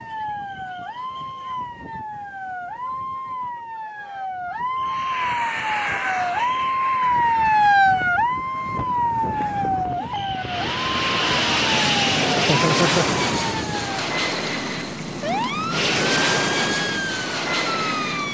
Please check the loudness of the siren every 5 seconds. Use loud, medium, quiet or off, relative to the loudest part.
medium, loud, medium, medium.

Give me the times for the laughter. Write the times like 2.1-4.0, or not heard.
12.3-13.1.